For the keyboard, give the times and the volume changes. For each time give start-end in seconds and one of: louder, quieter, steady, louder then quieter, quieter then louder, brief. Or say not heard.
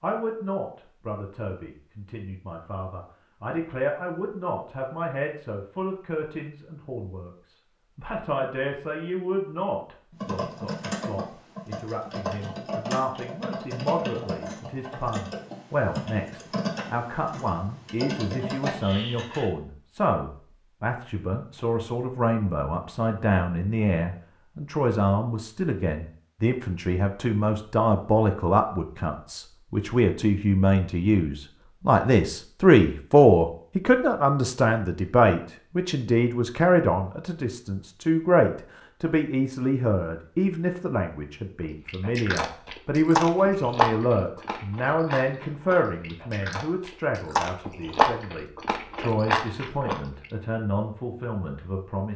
10.1-19.5 steady.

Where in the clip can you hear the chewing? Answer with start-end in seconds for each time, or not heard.
41.9-50.2.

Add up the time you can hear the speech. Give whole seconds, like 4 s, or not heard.
52 s.